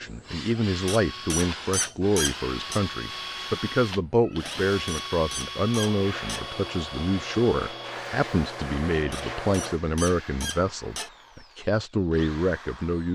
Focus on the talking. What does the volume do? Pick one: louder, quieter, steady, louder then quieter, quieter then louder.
steady.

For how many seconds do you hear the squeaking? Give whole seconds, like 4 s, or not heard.
6 s.